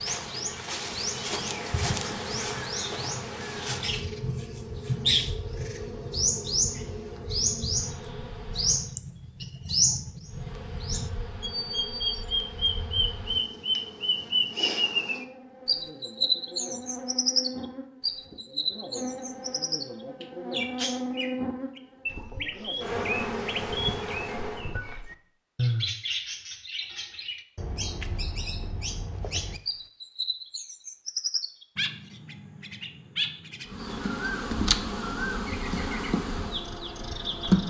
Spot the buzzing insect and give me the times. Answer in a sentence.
You can hear the buzzing insect from 0.0 to 8.9 s, from 10.2 to 24.8 s and from 33.6 to 37.6 s.